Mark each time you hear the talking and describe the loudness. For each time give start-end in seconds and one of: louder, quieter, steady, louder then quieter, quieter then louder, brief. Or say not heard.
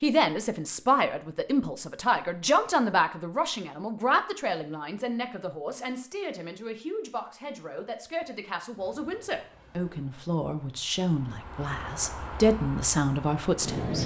0.0-14.0 quieter then louder.